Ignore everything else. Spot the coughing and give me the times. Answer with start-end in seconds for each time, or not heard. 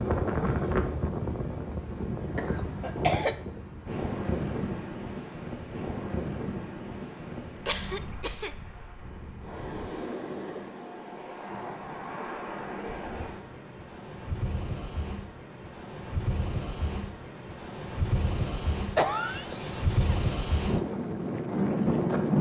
2.4-3.4, 7.7-8.6, 18.9-19.9.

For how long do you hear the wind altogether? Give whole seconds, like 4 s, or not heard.
22 s.